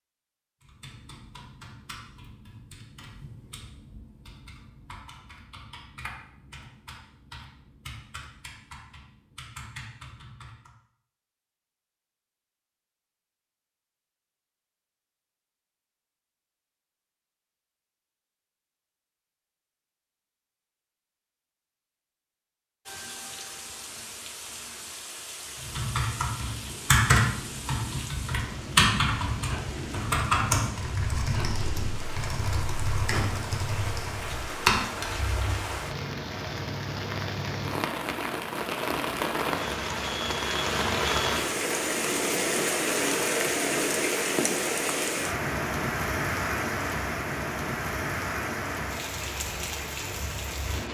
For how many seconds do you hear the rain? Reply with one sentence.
You can hear the rain for 28 seconds altogether.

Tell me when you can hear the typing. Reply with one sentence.
The typing can be heard from 0.6 to 10.7 s and from 25.6 to 35.6 s.